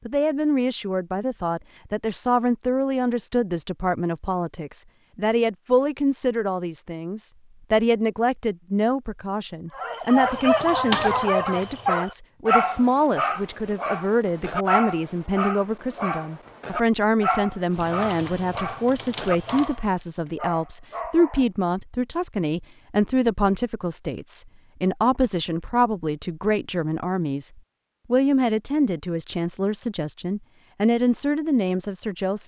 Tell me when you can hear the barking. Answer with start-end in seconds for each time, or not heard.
9.8-21.4.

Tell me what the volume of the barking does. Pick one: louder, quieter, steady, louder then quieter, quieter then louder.
quieter.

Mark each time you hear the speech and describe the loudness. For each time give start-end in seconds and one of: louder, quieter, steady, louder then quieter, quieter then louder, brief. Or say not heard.
0.1-32.4 steady.